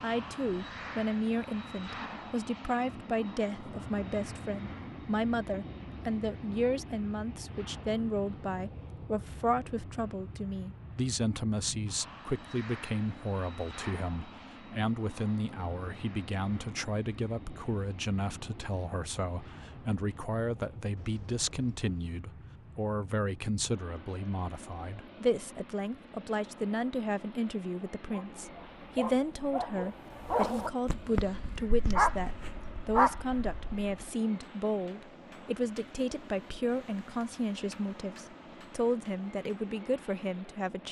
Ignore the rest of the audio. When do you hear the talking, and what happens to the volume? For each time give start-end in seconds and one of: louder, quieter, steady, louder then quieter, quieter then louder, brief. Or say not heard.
0.0-40.8 steady.